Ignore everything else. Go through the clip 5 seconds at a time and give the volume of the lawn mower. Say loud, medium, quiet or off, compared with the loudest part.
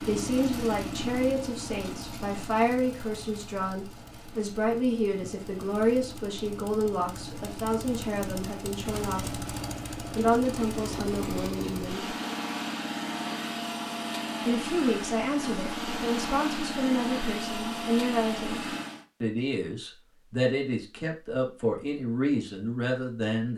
medium, medium, loud, loud, off.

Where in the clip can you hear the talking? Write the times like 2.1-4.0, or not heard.
0.1-9.4, 10.2-12.2, 14.4-23.5.